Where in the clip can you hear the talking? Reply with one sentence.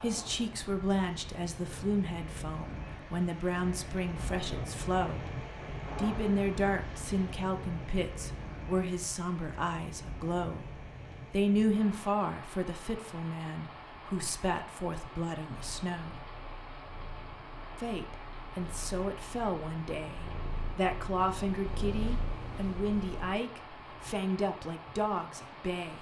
You can hear the talking from 0.0 to 5.3 s, from 6.0 to 16.2 s and from 17.8 to 25.9 s.